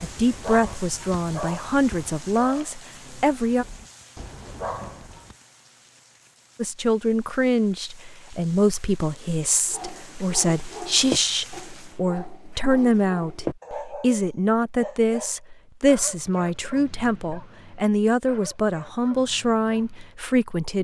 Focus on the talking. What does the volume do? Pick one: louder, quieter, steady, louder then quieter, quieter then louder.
steady.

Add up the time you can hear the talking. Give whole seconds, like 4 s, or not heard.
18 s.